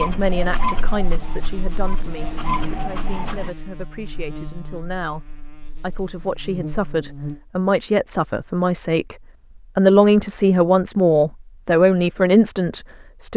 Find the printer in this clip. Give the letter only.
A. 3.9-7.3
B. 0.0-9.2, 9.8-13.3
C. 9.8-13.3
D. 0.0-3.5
D.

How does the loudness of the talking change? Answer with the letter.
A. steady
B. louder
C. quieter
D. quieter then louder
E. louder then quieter
D.